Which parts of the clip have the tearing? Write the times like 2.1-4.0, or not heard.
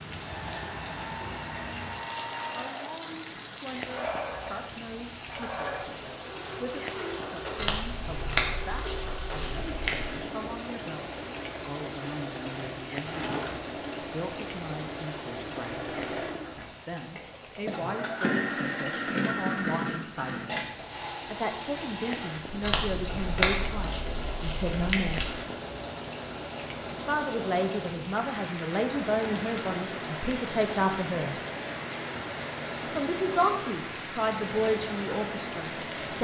7.5-10.1, 22.6-25.2.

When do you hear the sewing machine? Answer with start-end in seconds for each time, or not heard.
0.1-36.1.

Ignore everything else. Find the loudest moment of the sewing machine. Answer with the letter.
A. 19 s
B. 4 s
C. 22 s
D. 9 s
A.